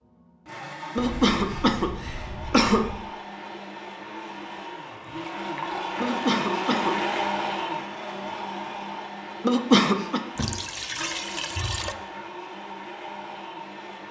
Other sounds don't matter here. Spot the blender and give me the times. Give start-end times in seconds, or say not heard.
0.0-14.0.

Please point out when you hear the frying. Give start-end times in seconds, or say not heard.
not heard.